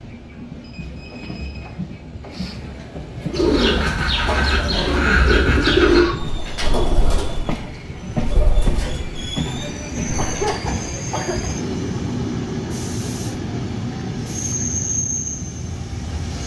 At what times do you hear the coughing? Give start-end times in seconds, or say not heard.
4.7-6.2, 10.2-11.5.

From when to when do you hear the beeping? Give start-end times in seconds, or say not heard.
0.6-1.7.